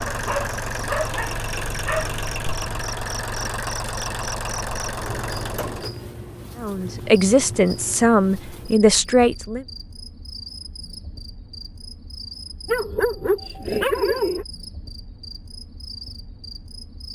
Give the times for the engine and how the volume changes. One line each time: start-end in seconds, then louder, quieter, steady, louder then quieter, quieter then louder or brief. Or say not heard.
0.0-6.0 steady.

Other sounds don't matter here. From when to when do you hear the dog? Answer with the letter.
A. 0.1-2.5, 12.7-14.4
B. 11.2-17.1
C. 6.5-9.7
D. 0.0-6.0
A.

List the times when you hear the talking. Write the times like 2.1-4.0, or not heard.
6.5-9.7.